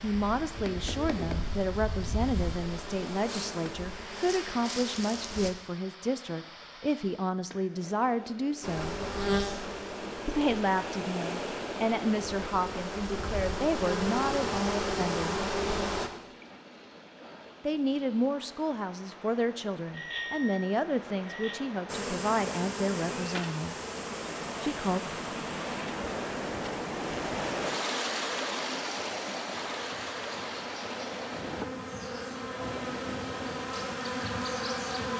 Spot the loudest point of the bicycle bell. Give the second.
20 s.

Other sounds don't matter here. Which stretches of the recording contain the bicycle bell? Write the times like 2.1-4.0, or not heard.
19.9-21.6.